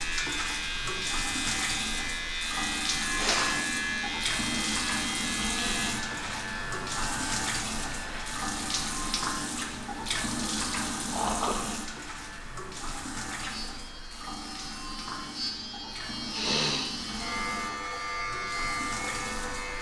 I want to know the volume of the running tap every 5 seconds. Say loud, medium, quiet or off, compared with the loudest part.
loud, loud, loud, medium.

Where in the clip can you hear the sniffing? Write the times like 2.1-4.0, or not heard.
3.1-3.8, 11.1-11.7, 16.3-16.9.